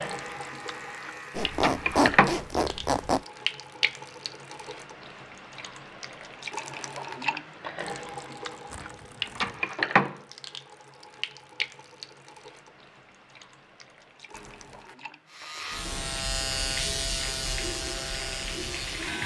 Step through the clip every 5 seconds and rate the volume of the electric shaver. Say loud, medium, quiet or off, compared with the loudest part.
medium, off, off, loud.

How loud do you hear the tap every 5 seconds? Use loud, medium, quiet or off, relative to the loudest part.
loud, loud, medium, medium.